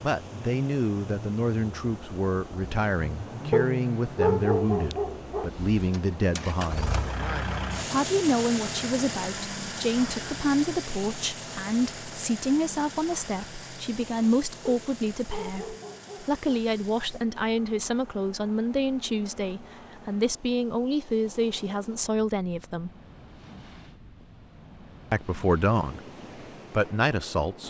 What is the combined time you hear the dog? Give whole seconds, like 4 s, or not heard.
4 s.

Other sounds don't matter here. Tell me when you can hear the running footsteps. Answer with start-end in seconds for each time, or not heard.
not heard.